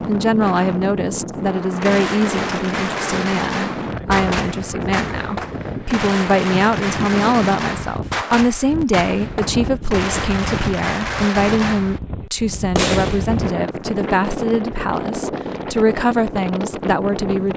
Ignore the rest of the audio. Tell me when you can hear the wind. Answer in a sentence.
The wind can be heard from 0.0 to 17.5 s.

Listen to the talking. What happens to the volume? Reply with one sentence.
The volume of the talking stays about the same.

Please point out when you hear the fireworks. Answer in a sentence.
You can hear the fireworks from 1.8 to 13.4 s.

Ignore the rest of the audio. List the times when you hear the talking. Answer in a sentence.
You can hear the talking from 0.1 to 17.5 s.